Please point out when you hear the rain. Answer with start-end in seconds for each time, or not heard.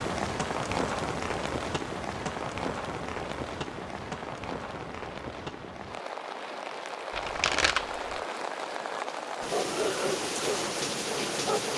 0.0-11.7.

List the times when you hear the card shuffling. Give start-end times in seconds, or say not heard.
7.1-8.2.